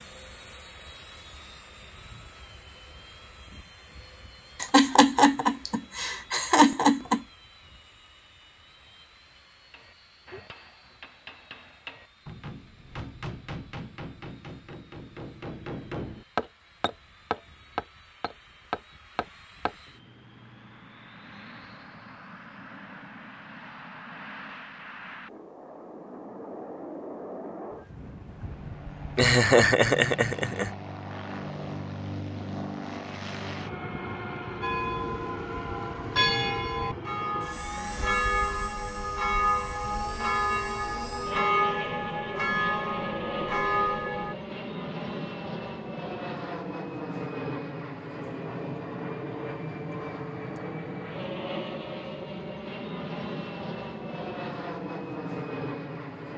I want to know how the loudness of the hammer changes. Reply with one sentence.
The volume of the hammer goes up.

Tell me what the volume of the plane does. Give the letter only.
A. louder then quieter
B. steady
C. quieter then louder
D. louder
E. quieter
D.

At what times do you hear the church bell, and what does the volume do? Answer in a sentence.
You can hear the church bell from 34.6 to 44.4 s, at a steady volume.